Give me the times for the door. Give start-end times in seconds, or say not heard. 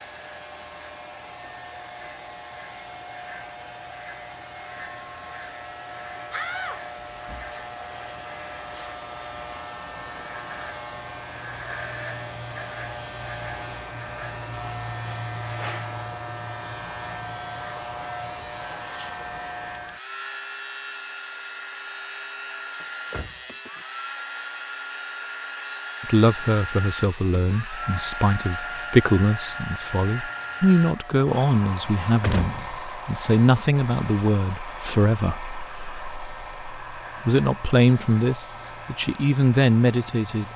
6.3-7.5, 22.8-23.4, 31.8-32.8.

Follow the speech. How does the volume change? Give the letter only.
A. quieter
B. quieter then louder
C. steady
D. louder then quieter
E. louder
C.